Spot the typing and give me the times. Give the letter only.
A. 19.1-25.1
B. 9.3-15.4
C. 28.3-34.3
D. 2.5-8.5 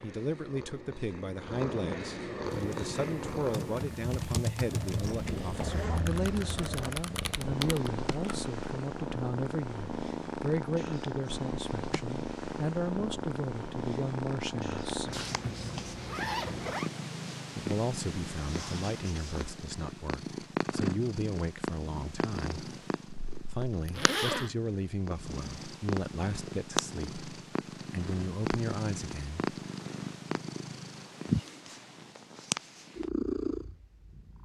D.